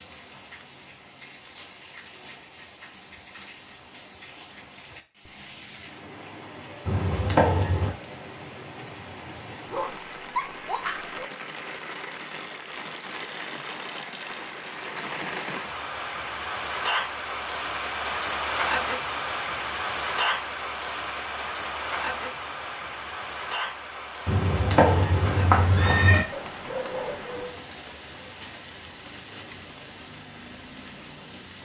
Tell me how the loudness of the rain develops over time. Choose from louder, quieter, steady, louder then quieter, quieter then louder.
louder then quieter.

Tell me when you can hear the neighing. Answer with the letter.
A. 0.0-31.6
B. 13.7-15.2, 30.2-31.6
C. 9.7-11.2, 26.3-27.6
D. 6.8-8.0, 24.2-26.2
D.